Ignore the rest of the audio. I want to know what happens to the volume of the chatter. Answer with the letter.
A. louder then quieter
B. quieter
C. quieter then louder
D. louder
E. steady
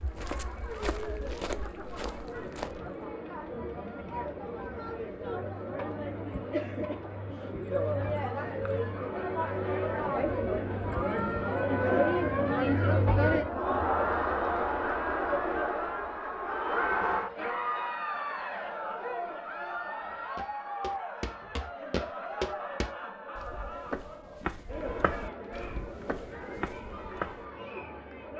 A.